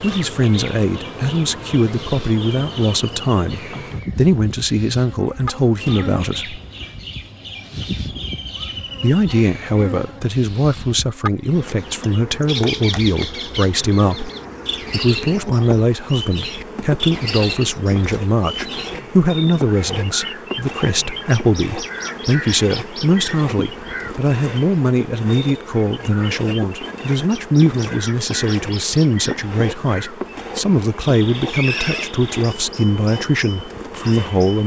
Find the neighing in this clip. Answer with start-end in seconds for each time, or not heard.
31.4-32.1.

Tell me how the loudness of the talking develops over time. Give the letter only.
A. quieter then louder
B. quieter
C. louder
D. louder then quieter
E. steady
E.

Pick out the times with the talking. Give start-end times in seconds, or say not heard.
0.0-6.6, 9.0-14.3, 14.9-34.6.